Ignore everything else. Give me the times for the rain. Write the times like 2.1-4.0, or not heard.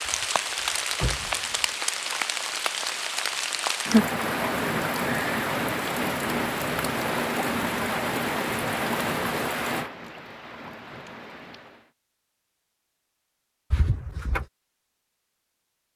0.0-11.9.